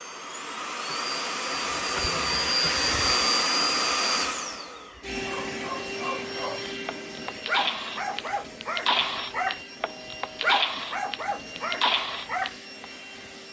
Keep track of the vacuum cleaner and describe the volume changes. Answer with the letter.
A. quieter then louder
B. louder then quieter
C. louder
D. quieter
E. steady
D.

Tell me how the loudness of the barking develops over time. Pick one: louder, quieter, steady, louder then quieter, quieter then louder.
louder.